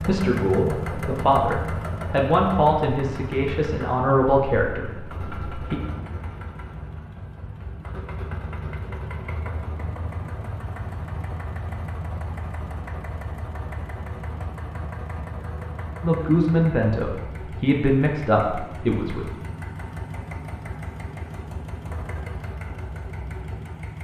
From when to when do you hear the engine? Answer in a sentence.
You can hear the engine from 0.0 to 24.0 s.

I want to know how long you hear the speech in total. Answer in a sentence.
The speech can be heard for 9 seconds in total.